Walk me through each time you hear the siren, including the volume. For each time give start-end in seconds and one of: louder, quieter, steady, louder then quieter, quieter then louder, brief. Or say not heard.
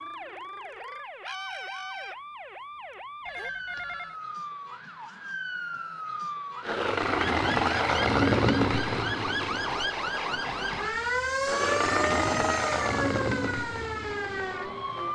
0.0-15.1 louder.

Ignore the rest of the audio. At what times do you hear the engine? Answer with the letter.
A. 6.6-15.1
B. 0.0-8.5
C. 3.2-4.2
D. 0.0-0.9
A.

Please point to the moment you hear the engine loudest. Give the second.
8 s.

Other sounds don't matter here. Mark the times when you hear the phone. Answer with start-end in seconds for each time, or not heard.
3.2-4.2.